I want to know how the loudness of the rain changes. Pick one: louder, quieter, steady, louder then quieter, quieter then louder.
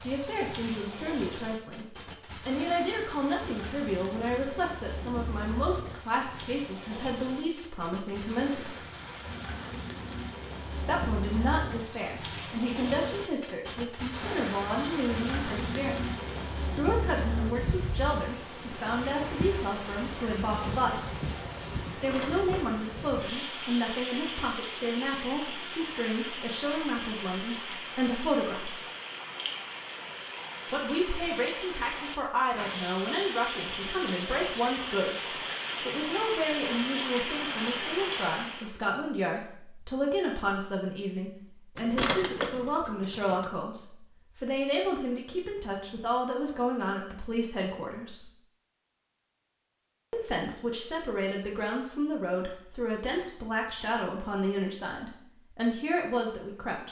louder.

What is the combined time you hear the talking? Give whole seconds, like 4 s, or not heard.
50 s.